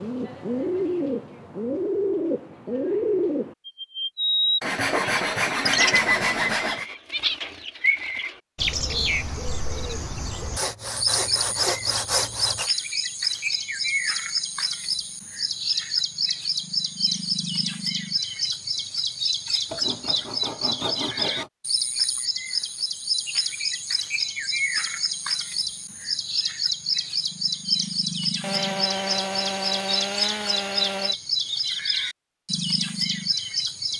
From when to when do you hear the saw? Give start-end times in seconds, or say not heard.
4.6-6.8, 10.6-12.7, 19.7-21.5, 28.4-31.1.